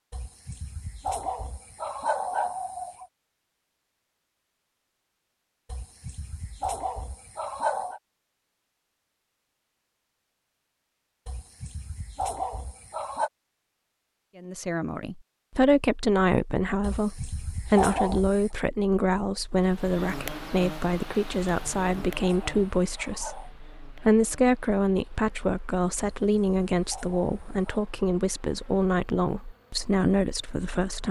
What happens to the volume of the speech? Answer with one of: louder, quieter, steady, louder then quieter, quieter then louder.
steady.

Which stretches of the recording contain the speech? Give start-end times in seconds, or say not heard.
14.3-31.0.